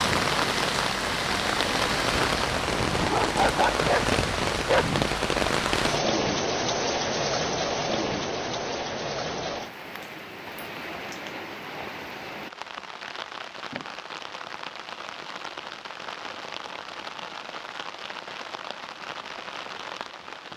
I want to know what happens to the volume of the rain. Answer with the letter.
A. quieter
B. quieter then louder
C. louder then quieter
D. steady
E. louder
A.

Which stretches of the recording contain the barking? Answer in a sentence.
You can hear the barking from 2.1 to 5.1 s.